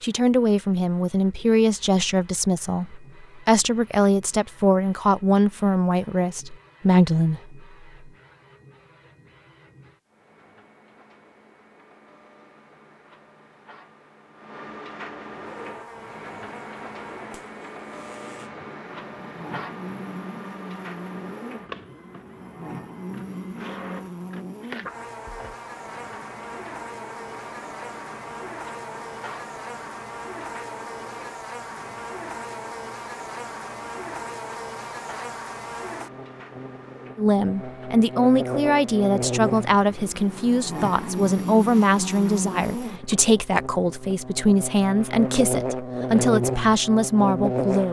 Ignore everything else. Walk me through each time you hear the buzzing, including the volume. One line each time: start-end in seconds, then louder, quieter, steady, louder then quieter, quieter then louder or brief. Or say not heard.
15.3-47.8 louder.